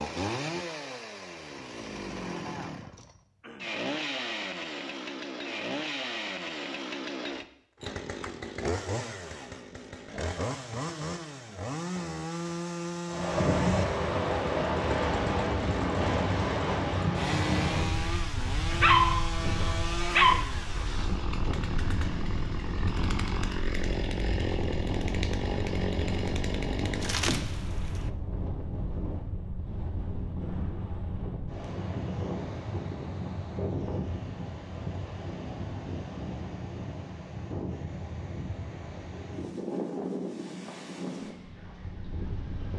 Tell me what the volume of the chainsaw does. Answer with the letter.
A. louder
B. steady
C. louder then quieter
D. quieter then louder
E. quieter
B.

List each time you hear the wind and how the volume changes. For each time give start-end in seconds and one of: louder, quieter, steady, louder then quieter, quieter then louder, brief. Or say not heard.
13.1-42.7 quieter.